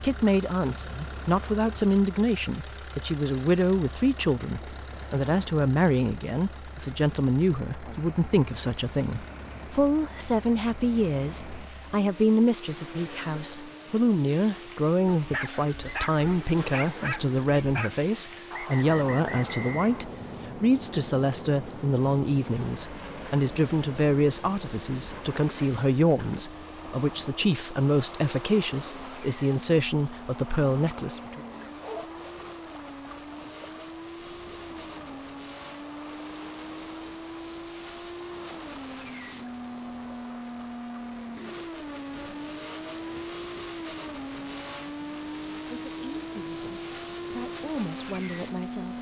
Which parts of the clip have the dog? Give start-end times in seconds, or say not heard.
15.2-17.9, 30.9-32.2.